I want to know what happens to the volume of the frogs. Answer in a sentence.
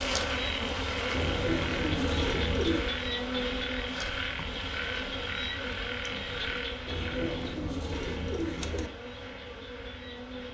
The loudness of the frogs goes down.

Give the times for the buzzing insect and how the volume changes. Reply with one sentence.
The buzzing insect can be heard from 0.0 to 10.5 s, getting quieter.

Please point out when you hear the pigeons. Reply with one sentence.
The pigeons can be heard from 1.1 to 2.9 s and from 6.8 to 8.9 s.